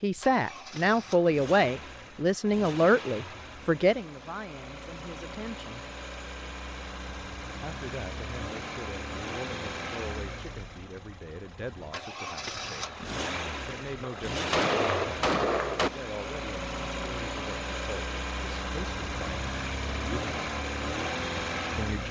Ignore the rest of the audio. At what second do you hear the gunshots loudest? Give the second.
15 s.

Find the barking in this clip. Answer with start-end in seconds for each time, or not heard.
not heard.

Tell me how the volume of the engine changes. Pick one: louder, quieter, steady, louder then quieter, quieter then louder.
louder.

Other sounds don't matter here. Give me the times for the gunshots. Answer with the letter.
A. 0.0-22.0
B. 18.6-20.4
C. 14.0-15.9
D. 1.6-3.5
C.